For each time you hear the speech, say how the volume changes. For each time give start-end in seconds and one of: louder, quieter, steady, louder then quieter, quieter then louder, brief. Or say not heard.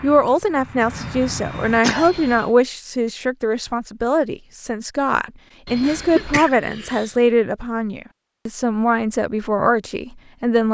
0.0-10.6 steady.